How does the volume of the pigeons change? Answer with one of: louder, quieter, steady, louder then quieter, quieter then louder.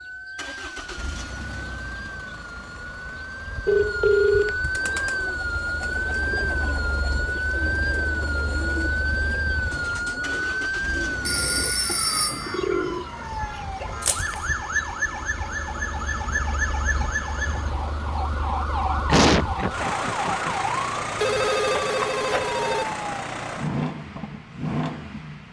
louder.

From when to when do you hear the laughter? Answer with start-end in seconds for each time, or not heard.
19.1-20.6.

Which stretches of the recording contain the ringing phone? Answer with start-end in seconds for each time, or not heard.
3.6-4.5, 11.2-12.7, 21.2-22.9.